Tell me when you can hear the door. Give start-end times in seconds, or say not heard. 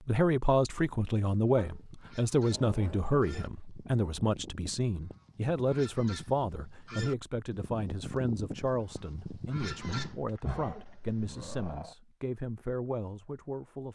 not heard.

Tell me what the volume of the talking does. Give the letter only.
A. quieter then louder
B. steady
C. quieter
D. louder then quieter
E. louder
C.